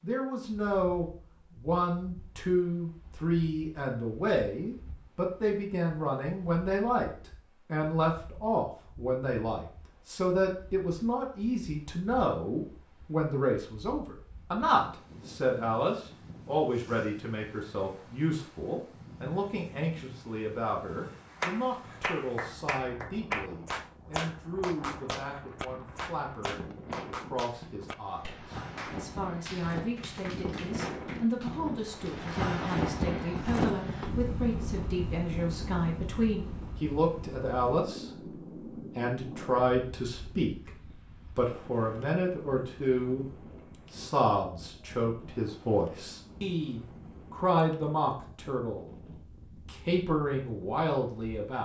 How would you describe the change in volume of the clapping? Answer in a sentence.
The volume of the clapping goes down.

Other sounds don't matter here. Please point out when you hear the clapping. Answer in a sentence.
The clapping can be heard from 21.3 to 32.4 s.